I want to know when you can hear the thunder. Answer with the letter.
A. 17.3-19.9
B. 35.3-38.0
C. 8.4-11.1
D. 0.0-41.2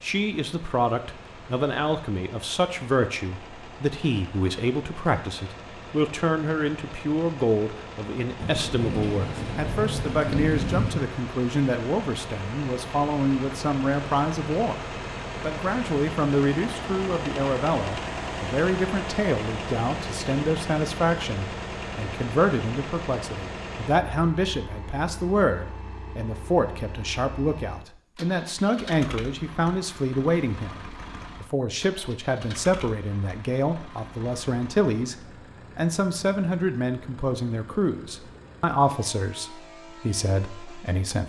C.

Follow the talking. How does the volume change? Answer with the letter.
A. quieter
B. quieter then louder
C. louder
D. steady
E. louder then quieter
D.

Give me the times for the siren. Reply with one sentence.
The siren can't be heard in this clip.